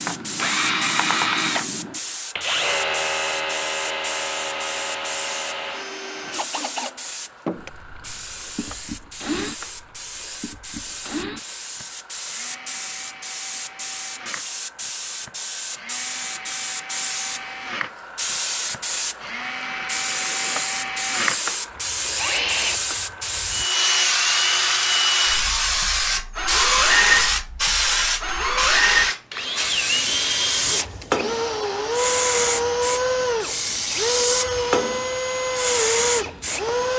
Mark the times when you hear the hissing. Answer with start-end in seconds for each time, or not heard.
0.0-36.9.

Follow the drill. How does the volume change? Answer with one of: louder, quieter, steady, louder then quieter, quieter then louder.
quieter then louder.